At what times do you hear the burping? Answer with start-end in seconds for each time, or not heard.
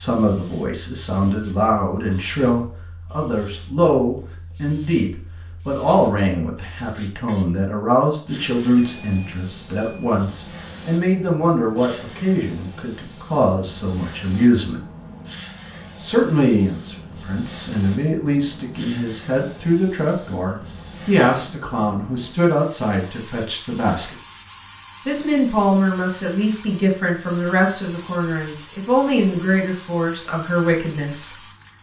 not heard.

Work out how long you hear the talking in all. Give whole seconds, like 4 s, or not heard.
29 s.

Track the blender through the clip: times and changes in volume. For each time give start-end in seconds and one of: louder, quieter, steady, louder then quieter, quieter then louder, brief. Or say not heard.
not heard.